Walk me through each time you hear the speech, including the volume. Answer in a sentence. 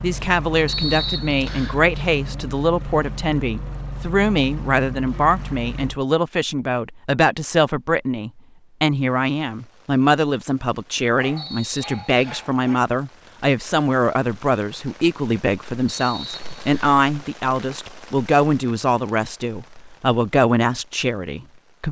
The speech can be heard from 0.0 to 21.8 s, at a steady volume.